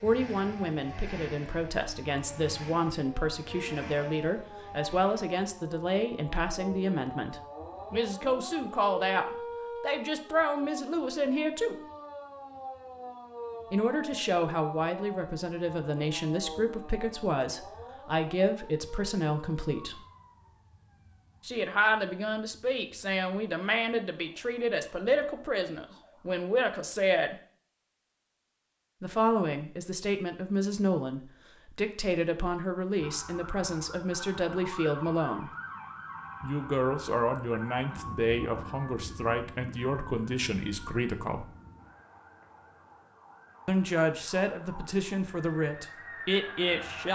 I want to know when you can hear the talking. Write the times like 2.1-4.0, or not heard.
0.0-11.8, 13.7-20.1, 21.4-27.4, 29.0-35.5, 36.4-41.5, 43.6-47.1.